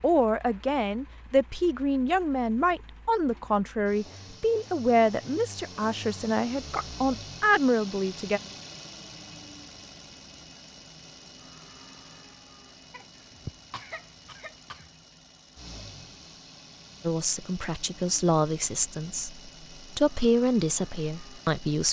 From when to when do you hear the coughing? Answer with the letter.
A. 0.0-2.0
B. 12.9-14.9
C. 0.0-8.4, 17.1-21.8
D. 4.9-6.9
B.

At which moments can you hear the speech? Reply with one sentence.
The speech can be heard from 0.0 to 8.4 s and from 17.1 to 21.8 s.